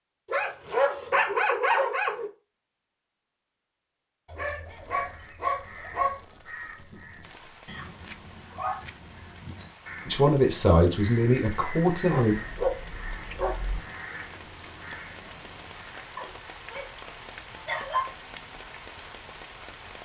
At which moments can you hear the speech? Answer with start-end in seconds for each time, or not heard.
10.1-12.3.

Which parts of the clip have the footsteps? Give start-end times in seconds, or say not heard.
not heard.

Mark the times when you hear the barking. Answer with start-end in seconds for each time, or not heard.
0.2-2.3, 4.2-6.2, 8.5-9.9, 12.1-13.8, 16.1-18.1.